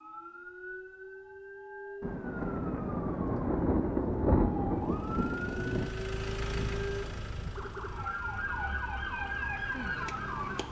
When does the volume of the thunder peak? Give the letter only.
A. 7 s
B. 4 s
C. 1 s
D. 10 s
B.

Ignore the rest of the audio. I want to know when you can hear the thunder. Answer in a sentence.
The thunder can be heard from 2.0 to 5.9 s.